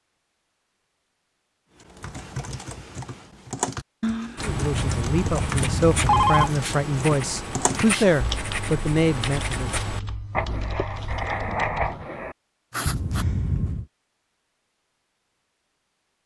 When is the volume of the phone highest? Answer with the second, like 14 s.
6 s.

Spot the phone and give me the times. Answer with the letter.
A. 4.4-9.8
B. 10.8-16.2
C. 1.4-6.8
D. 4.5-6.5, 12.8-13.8
D.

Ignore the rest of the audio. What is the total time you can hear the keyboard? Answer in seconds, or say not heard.
10 s.